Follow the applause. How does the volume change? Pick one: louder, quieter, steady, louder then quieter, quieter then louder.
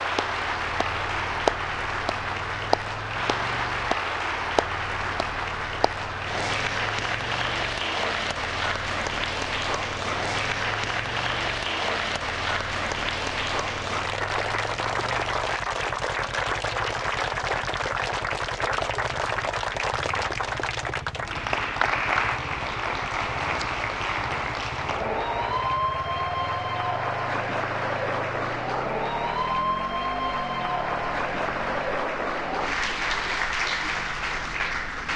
steady.